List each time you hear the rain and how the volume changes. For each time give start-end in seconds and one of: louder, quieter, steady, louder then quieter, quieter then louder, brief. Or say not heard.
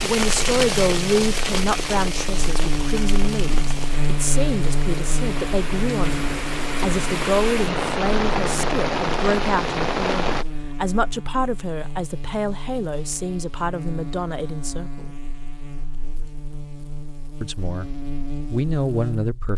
0.0-10.4 quieter then louder.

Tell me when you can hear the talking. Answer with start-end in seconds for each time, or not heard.
0.0-15.1, 17.4-17.9, 18.5-19.5.